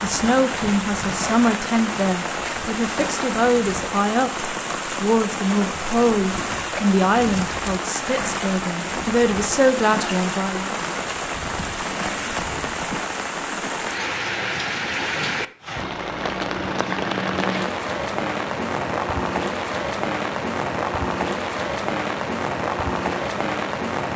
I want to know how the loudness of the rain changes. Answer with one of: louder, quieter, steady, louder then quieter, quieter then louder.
steady.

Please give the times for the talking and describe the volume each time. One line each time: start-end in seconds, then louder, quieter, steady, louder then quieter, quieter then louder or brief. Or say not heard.
0.0-10.8 steady.